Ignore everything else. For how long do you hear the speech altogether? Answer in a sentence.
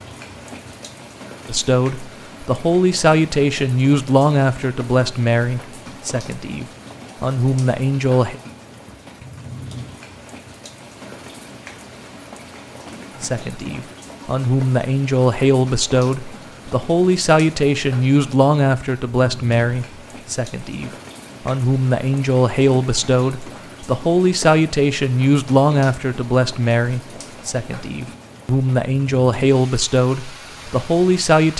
The speech can be heard for 25 seconds in total.